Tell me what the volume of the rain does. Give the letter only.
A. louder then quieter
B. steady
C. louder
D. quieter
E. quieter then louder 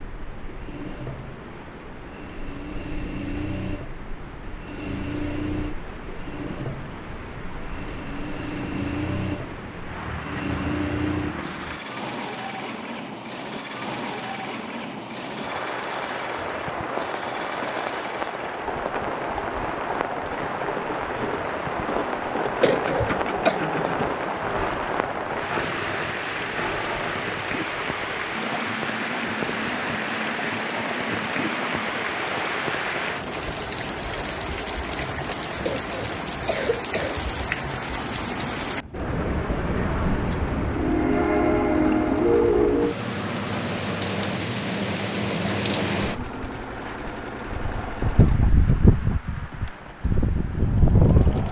C.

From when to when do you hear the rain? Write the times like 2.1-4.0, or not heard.
0.0-51.4.